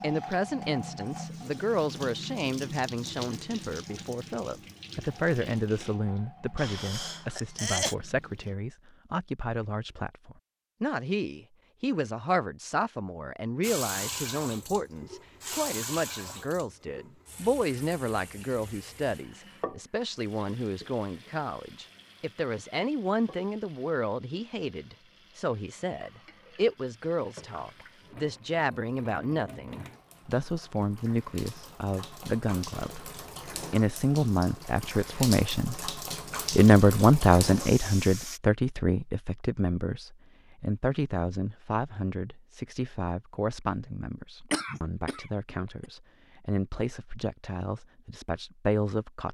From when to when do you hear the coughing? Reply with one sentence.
You can hear the coughing from 6.5 to 8.0 s and from 44.5 to 45.9 s.